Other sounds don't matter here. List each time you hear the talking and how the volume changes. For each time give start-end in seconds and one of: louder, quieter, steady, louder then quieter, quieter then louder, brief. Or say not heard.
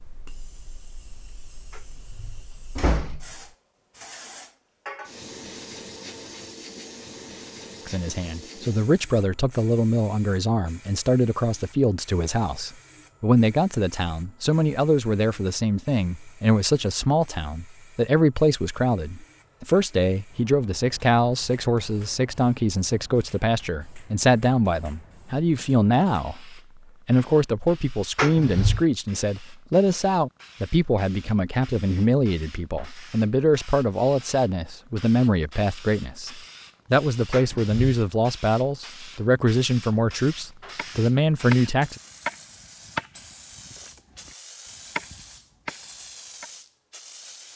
7.8-42.0 steady.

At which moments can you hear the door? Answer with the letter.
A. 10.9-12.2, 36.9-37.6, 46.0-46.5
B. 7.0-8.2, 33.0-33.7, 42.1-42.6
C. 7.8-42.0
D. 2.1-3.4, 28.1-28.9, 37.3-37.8
D.